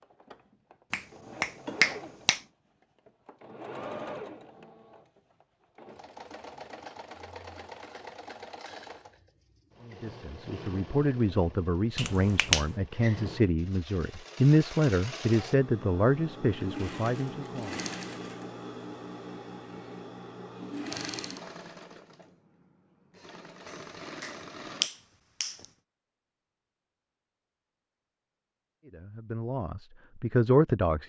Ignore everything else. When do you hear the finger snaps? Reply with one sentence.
The finger snaps can be heard from 0.9 to 2.4 s, from 11.9 to 12.7 s and from 24.2 to 25.6 s.